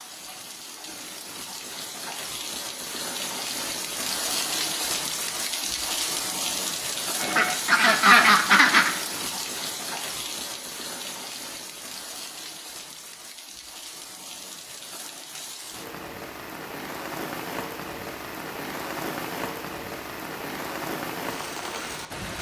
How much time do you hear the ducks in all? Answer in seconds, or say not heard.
2 s.